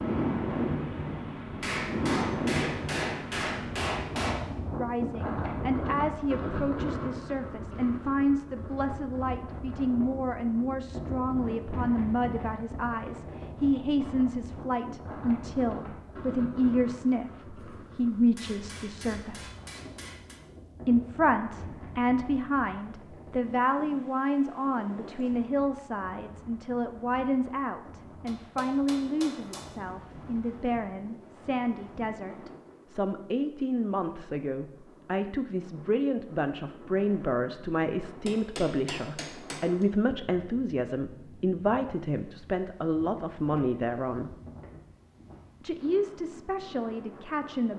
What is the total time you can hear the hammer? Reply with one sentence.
The hammer can be heard for 8 seconds in total.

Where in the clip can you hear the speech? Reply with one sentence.
The speech can be heard from 4.8 to 19.4 s, from 20.9 to 44.4 s and from 45.6 to 47.7 s.